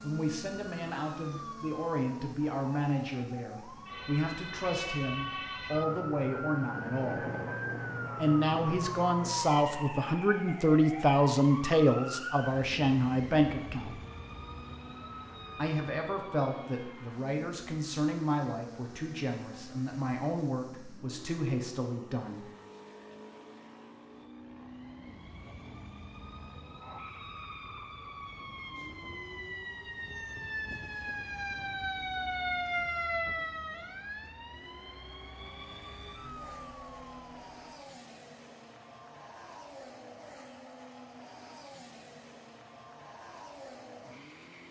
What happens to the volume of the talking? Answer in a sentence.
The loudness of the talking goes up, then down.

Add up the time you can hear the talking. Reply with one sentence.
You can hear the talking for 20 seconds altogether.